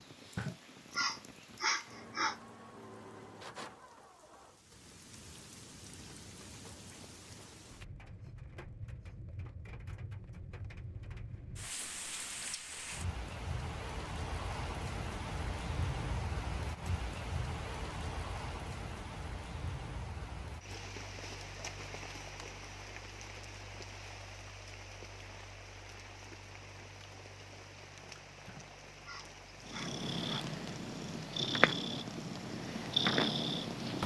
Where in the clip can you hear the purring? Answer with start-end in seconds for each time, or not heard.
29.6-34.0.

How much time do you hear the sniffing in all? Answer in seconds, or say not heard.
4 s.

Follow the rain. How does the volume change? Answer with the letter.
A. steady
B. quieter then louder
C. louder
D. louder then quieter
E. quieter
D.